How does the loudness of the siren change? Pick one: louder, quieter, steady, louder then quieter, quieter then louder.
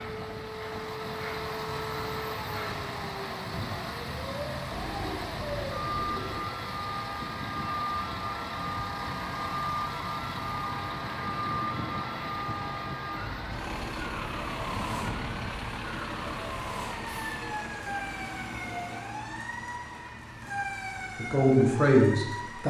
steady.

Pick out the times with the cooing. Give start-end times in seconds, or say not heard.
4.7-6.5.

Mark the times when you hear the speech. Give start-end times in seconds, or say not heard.
21.1-22.6.